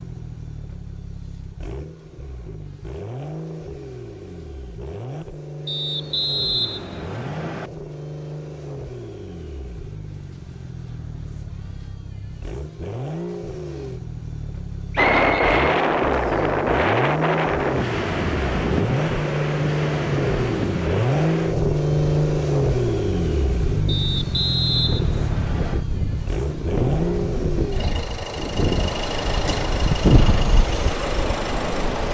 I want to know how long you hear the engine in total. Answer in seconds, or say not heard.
32 s.